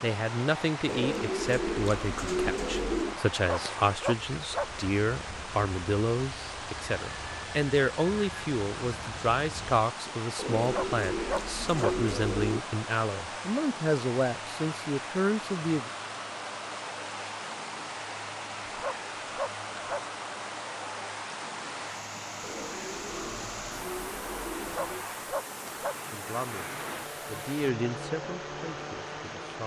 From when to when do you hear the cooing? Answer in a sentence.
You can hear the cooing from 0.8 to 3.2 s, from 10.3 to 12.6 s and from 22.4 to 25.1 s.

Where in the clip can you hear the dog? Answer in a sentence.
You can hear the dog from 3.3 to 4.7 s, from 10.6 to 11.9 s, from 18.6 to 20.0 s and from 24.6 to 25.9 s.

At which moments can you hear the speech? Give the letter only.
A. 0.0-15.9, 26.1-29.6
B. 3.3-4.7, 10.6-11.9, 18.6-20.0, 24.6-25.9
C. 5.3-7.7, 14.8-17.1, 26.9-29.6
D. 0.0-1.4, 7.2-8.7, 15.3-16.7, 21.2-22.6
A.